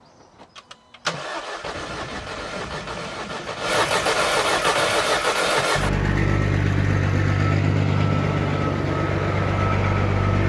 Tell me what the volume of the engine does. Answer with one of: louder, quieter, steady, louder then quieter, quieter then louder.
louder.